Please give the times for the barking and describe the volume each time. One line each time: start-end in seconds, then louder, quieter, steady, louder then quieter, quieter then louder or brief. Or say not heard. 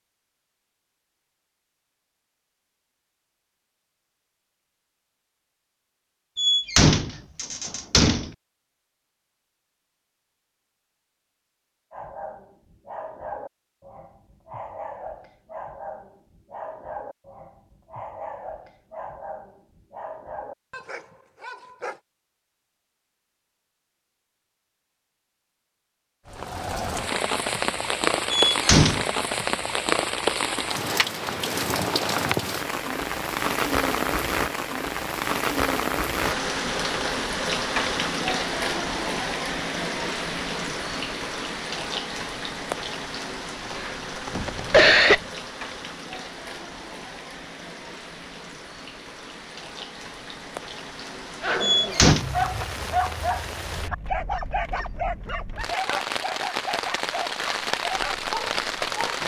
11.9-22.0 steady
51.4-59.0 quieter.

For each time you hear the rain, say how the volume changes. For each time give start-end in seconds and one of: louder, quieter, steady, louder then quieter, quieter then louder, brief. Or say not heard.
26.2-59.2 quieter then louder.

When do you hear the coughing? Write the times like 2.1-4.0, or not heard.
43.8-45.2.